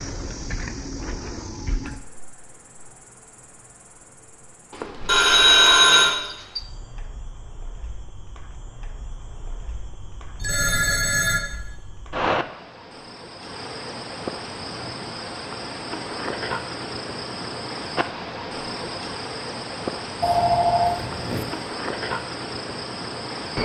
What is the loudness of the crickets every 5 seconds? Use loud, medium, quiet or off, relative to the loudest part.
medium, quiet, loud, loud, loud.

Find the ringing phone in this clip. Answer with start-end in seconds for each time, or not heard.
5.0-6.2, 10.3-11.4, 20.2-21.4.